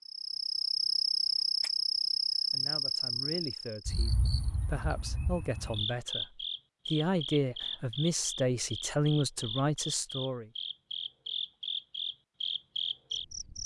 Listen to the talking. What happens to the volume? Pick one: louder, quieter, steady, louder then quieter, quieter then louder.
louder.